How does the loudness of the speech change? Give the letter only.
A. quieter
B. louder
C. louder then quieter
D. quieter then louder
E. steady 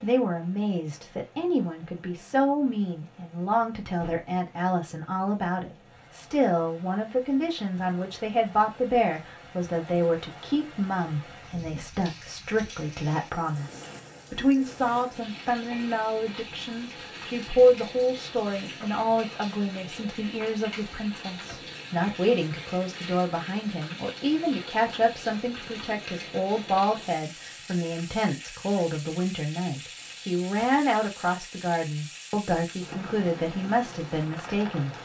E.